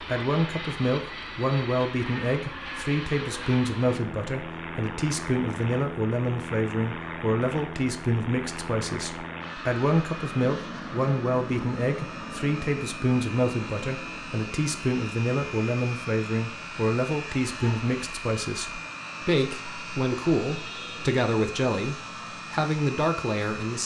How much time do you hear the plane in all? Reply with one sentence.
The plane can be heard for 24 seconds in total.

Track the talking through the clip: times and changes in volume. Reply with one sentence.
The talking can be heard from 0.0 to 23.8 s, at a steady volume.